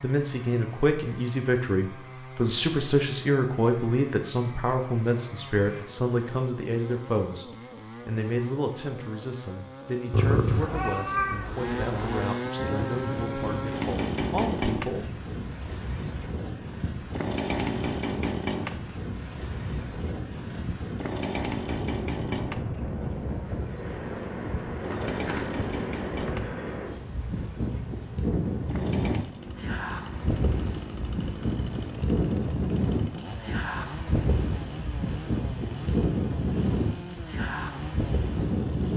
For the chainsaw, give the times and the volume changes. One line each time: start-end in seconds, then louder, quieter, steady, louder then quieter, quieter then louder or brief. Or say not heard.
0.0-38.9 louder then quieter.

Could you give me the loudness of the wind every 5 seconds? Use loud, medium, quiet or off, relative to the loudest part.
off, off, medium, medium, medium, loud, loud, loud.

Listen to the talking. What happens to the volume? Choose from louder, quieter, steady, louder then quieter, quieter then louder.
quieter.